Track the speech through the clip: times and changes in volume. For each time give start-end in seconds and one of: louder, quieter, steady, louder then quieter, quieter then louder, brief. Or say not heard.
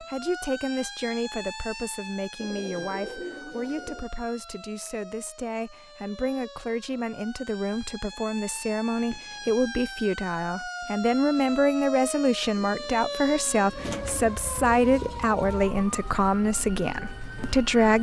0.0-17.9 louder.